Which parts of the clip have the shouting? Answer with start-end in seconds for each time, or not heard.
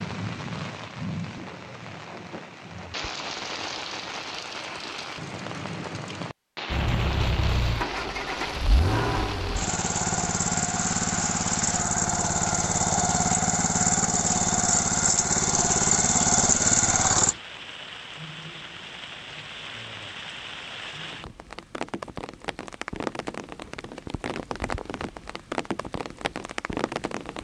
not heard.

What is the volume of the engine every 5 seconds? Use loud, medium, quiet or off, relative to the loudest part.
off, medium, loud, loud, off, off.